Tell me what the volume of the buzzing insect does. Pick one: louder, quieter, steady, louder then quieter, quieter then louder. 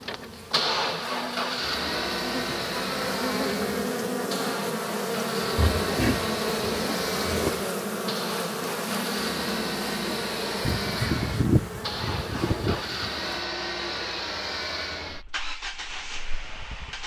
louder then quieter.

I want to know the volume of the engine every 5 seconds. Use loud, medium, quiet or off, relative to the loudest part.
loud, loud, loud, medium.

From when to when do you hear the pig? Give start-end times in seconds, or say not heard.
5.5-7.5.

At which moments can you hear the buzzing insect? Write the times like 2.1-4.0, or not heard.
0.0-13.4.